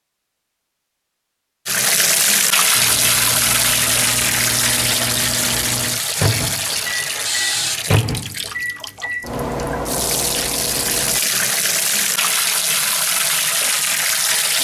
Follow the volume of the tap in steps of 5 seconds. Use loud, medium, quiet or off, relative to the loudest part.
loud, medium, loud.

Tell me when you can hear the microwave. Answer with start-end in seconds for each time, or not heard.
2.8-11.2.